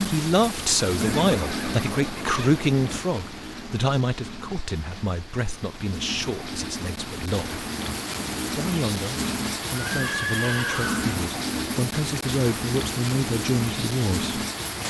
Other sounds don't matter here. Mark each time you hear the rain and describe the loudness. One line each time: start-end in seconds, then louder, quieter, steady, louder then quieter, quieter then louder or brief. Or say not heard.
0.0-14.8 quieter then louder.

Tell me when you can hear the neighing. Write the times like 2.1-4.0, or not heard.
1.0-3.0, 9.8-11.2.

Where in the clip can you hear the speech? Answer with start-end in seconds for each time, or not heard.
0.1-7.6, 8.4-14.4.